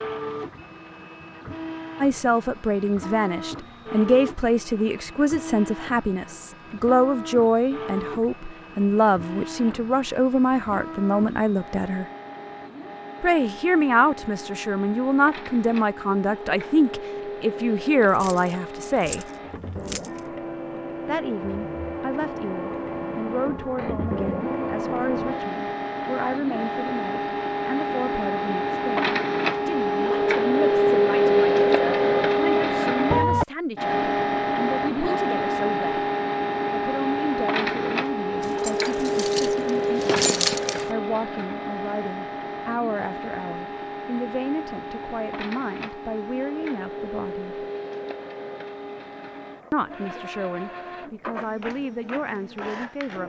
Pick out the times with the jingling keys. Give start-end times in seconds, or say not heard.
18.1-20.2, 38.4-41.0.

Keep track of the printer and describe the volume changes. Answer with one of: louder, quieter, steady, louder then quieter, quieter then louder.
louder then quieter.